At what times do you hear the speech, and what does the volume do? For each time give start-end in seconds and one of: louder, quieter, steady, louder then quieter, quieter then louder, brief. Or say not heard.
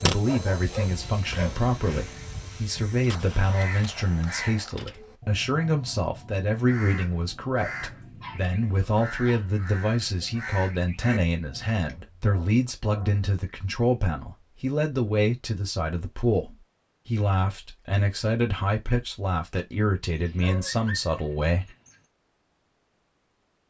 0.0-21.7 steady.